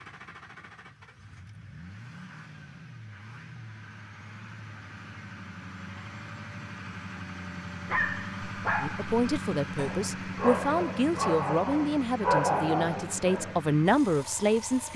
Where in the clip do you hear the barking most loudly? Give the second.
12 s.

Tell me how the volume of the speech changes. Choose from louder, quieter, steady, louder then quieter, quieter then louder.
louder.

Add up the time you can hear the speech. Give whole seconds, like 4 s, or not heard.
6 s.